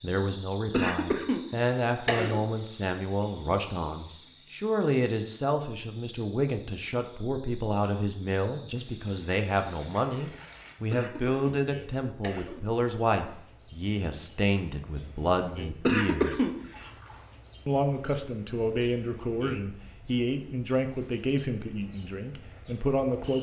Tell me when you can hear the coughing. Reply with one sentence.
You can hear the coughing from 0.7 to 2.5 s, from 10.9 to 12.6 s and from 15.8 to 16.9 s.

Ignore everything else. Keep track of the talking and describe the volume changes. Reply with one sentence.
The loudness of the talking stays about the same.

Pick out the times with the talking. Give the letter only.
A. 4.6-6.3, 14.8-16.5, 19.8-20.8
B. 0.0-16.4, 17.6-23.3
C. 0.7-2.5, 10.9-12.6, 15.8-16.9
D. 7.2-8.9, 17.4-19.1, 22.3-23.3
B.